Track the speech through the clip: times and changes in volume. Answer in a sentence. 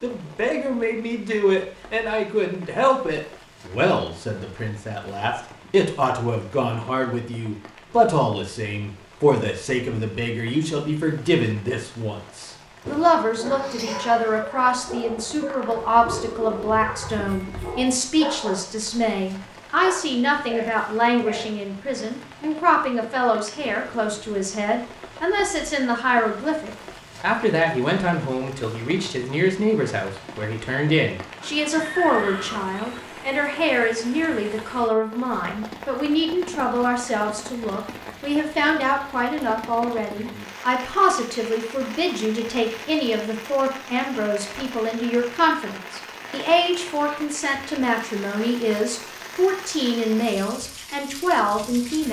The speech can be heard from 0.0 to 52.0 s, at a steady volume.